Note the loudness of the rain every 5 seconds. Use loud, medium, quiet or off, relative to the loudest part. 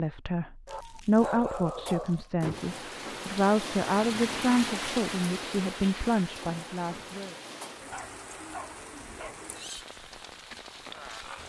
loud, medium, medium.